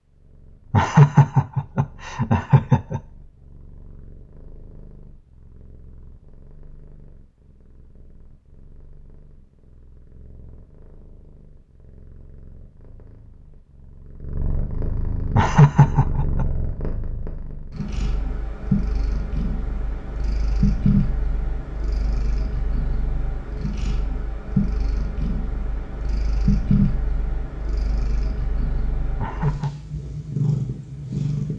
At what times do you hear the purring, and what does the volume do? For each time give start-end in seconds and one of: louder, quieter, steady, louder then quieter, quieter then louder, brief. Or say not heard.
0.0-31.5 louder.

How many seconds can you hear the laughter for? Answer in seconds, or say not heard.
4 s.